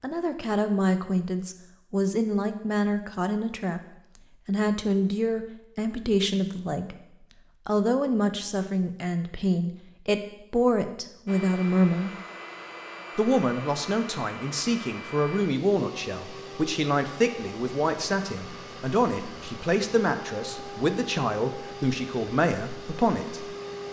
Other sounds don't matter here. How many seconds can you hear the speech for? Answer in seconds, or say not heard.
21 s.